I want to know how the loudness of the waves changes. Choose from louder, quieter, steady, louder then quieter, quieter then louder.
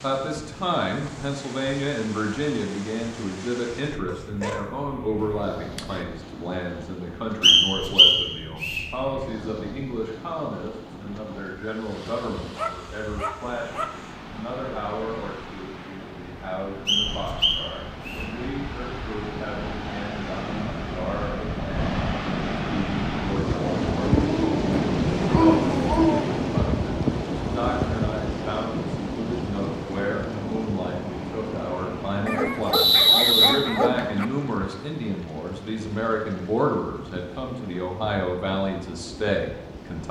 louder then quieter.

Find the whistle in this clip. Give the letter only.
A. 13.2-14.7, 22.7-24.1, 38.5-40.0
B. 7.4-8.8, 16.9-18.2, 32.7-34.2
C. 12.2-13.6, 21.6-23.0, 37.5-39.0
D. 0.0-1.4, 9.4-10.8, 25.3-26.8
B.